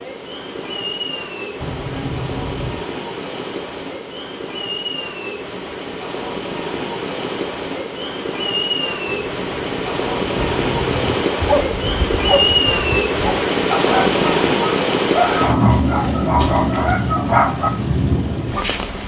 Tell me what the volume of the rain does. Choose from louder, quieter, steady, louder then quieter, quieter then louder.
louder.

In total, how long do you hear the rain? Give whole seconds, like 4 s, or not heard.
19 s.